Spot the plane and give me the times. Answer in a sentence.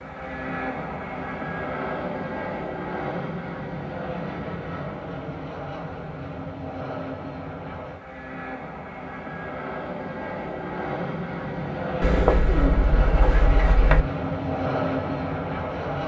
You can hear the plane from 0.0 to 16.0 s.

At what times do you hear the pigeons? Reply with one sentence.
You can hear the pigeons from 12.0 to 14.1 s.